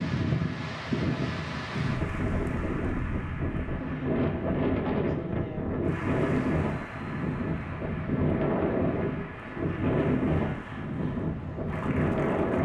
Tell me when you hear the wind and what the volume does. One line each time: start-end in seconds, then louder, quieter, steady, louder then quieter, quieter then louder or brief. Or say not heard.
0.0-12.6 steady.